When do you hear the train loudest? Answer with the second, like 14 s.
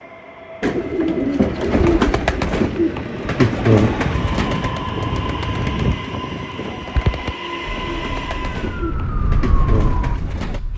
5 s.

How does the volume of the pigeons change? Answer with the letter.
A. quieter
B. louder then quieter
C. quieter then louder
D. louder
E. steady
A.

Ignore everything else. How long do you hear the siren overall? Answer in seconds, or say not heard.
3 s.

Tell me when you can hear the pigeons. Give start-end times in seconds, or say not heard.
0.6-10.6.